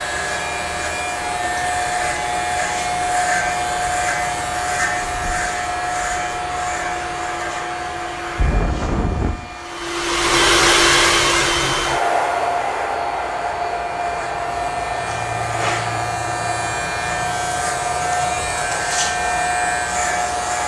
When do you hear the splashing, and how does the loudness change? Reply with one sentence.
The splashing can't be heard in this clip.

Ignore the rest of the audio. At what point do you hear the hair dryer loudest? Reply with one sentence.
The loudest moment of the hair dryer is at 11 seconds.